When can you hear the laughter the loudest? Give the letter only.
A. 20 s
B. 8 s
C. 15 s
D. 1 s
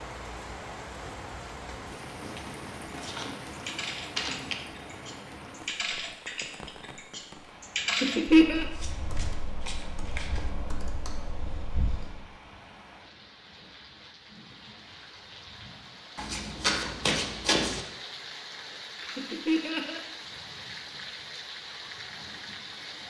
B.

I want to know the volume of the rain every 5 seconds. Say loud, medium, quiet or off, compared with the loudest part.
loud, medium, medium, loud, loud.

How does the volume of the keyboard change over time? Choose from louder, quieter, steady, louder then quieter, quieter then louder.
louder then quieter.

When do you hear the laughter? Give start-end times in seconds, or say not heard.
7.8-8.7, 19.0-20.0.